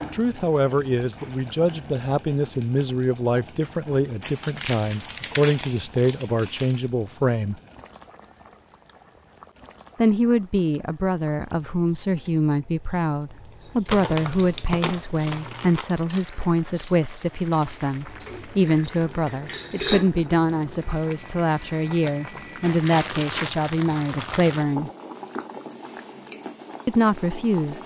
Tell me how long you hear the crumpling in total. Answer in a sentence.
You can hear the crumpling for 7 seconds altogether.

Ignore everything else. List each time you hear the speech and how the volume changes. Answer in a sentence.
You can hear the speech from 0.0 to 7.5 s, at a steady volume; from 9.9 to 24.9 s, at a steady volume; and briefly from 26.9 to 27.8 s.